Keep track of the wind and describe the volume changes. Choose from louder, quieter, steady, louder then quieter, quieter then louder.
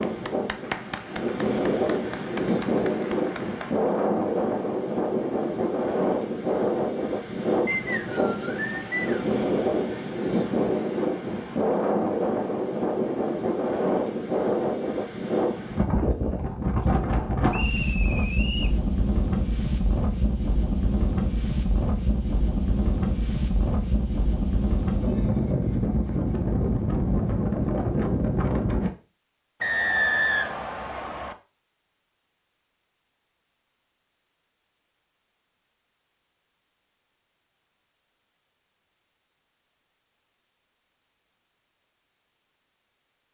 steady.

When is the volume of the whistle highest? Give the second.
30 s.